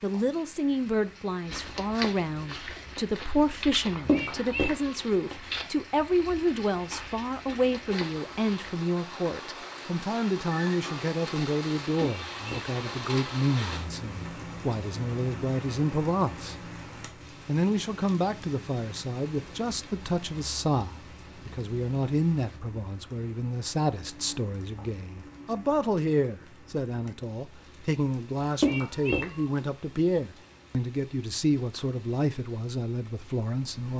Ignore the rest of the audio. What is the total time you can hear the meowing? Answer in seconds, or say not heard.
3 s.